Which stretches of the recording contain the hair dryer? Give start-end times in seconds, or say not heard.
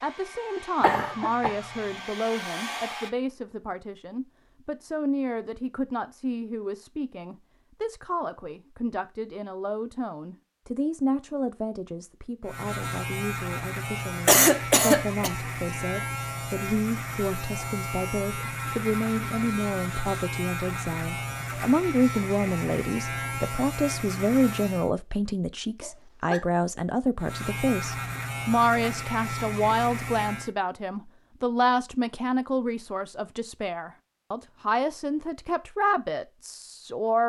0.0-3.1.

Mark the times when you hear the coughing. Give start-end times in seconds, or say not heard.
0.8-1.6, 14.2-15.3, 25.8-26.4.